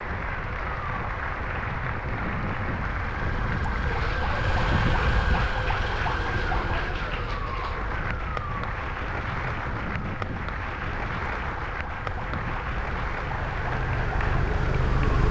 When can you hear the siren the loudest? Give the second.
5 s.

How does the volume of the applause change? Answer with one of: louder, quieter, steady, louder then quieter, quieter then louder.
steady.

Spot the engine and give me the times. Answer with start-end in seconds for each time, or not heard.
12.8-15.2.